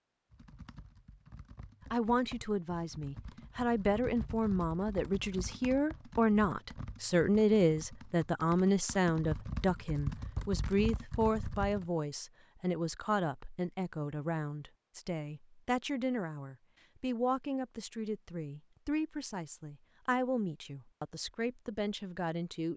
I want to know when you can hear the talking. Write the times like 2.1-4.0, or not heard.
1.9-22.7.